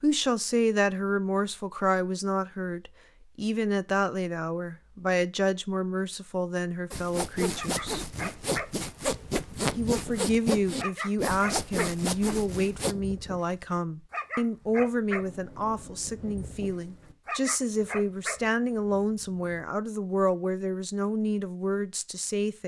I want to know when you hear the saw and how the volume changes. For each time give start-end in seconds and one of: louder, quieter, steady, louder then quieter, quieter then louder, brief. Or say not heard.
6.9-12.9 steady.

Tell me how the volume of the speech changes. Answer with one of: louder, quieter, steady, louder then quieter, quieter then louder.
steady.